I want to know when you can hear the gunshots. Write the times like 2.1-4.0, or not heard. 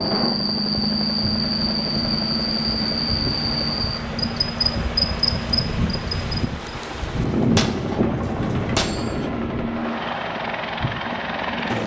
7.2-9.2.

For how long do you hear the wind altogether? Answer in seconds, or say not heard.
12 s.